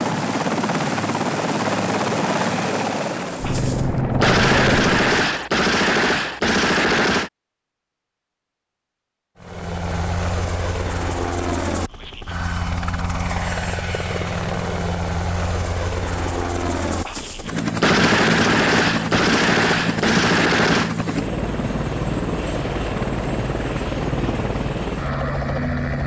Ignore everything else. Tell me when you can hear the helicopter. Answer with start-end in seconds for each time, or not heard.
0.0-5.1, 9.4-26.0.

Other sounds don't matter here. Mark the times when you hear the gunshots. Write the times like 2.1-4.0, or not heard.
3.3-7.3, 16.9-20.9.